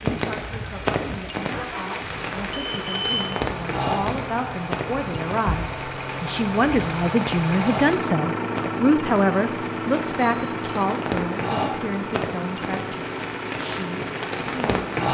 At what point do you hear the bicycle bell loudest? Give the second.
3 s.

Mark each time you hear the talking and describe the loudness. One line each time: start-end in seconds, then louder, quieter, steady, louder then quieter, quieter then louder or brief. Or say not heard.
0.1-14.8 louder then quieter.